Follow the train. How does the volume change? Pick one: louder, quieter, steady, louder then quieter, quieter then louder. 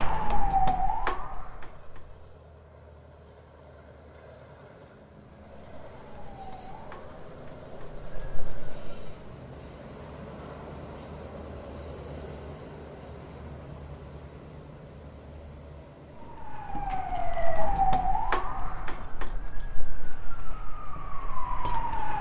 louder then quieter.